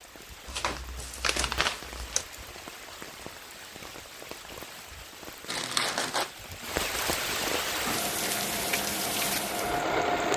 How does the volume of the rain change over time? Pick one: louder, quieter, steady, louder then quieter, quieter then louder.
louder.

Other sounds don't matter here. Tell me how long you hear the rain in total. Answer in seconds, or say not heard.
10 s.